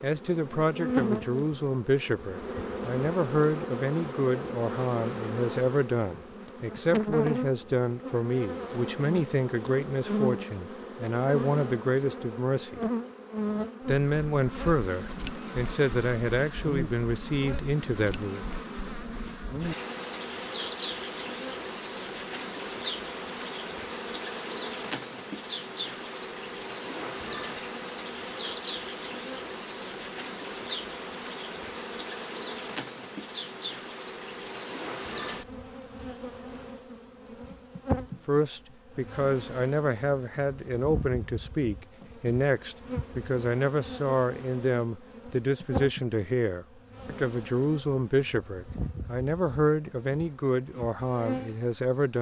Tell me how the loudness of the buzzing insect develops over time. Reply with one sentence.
The loudness of the buzzing insect goes down.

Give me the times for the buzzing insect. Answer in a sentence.
You can hear the buzzing insect from 0.0 to 52.1 s.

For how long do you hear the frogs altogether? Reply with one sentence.
You can't hear the frogs here.